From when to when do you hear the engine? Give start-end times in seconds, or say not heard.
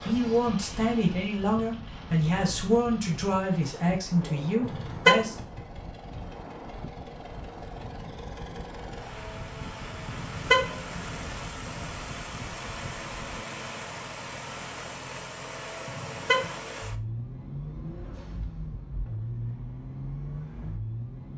0.0-21.3.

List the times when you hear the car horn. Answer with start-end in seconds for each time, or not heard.
4.6-5.2, 10.1-11.3, 15.8-16.6.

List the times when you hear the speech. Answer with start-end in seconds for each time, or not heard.
0.0-5.3.